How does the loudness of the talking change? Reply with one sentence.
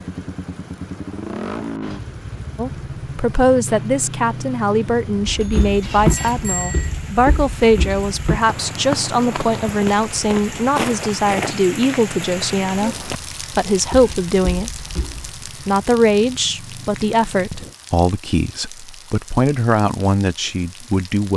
The loudness of the talking stays about the same.